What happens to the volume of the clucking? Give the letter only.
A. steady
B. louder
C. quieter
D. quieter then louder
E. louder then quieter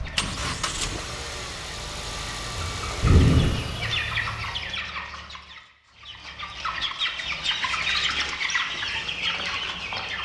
B.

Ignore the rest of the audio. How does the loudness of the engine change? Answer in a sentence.
The volume of the engine goes down.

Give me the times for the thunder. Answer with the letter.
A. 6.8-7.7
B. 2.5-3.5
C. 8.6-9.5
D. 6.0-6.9
B.